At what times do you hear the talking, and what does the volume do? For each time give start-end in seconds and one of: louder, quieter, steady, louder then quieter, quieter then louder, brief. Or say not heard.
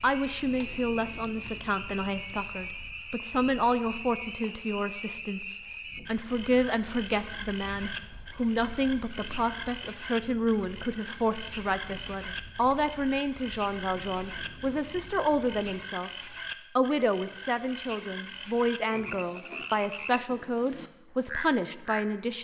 0.0-22.4 steady.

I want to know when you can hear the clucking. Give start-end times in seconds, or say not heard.
not heard.